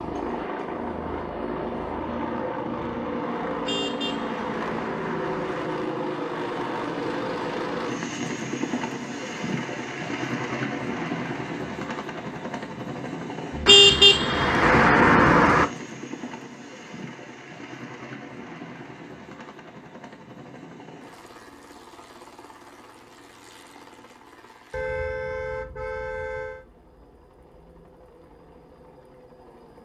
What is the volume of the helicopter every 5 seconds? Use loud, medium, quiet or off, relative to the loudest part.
loud, loud, loud, medium, quiet, quiet.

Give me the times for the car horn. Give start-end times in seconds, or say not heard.
3.6-5.7, 13.7-15.7, 24.7-26.6.